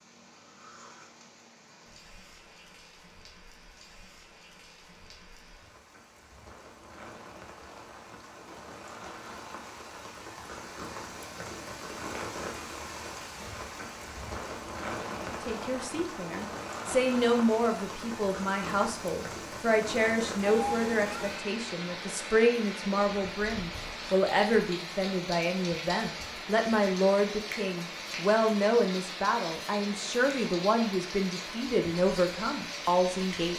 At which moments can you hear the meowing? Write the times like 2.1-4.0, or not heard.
20.4-21.4.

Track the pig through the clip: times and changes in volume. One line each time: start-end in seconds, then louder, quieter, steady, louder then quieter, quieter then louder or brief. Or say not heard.
not heard.